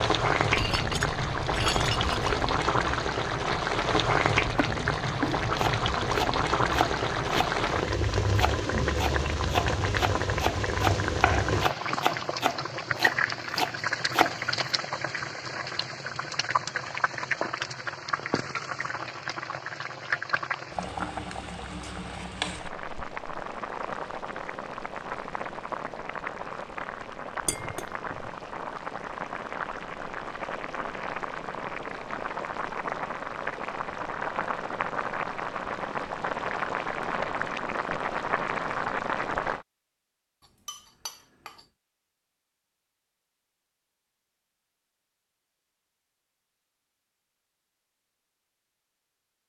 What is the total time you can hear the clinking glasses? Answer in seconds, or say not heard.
4 s.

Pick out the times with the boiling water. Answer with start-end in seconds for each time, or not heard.
0.0-39.6.